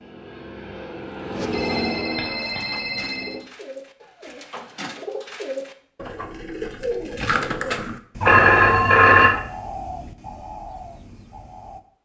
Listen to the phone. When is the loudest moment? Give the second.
9 s.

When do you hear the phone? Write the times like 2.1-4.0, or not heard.
1.5-3.4, 8.2-9.3.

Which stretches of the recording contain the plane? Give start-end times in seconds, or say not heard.
0.0-3.4.